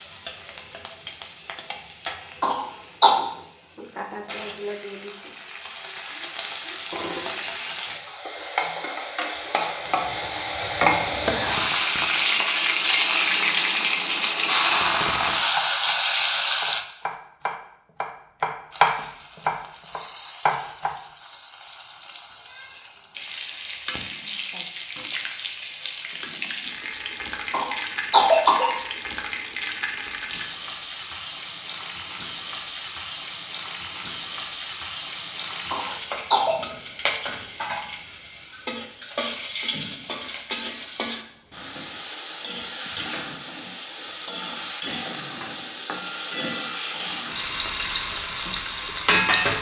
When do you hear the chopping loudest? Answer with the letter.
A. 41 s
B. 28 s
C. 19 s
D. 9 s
C.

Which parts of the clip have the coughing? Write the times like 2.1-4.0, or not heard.
2.4-3.1, 27.5-28.8, 35.7-36.5.